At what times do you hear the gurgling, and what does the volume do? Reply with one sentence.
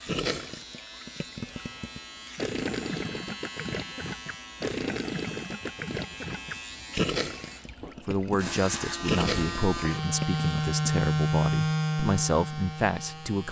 You can hear the gurgling from 0.1 to 10.8 s, getting louder.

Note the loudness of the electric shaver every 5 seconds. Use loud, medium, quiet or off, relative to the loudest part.
quiet, medium, loud.